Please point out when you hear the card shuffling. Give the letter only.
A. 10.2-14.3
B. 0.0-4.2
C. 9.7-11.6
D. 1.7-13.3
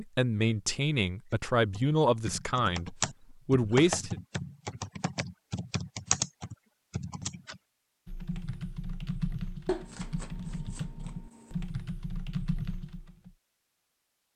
C.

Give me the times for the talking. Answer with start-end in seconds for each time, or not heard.
0.0-4.2.